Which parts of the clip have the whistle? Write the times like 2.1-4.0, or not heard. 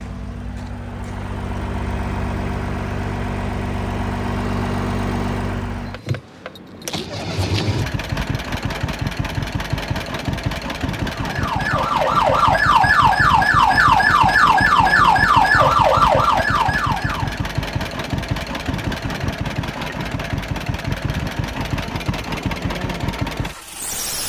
not heard.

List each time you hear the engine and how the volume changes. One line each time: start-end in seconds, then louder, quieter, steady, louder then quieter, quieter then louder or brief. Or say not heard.
0.0-24.2 steady.